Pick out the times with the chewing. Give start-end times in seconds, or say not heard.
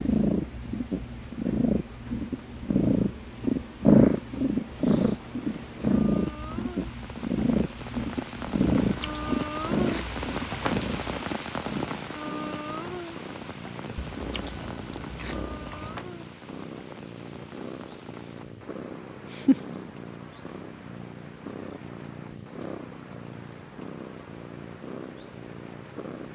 8.8-11.0, 13.9-16.1.